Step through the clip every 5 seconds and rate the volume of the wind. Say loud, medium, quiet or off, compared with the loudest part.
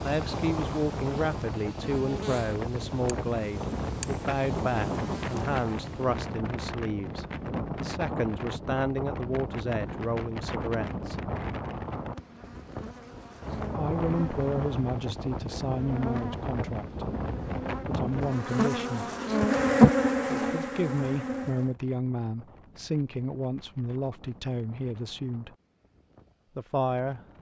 loud, loud, loud, loud, quiet, quiet.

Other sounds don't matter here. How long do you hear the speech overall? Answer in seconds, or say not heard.
22 s.